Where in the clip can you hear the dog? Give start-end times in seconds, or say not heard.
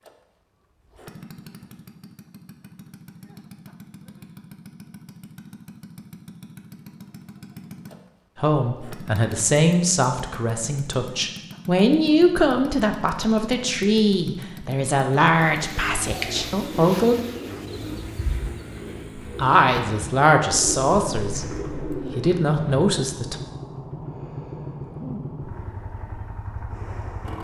not heard.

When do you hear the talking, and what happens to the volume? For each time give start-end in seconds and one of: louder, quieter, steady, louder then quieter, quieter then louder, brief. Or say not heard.
8.4-17.2 steady
19.4-21.4 brief
22.1-23.4 brief.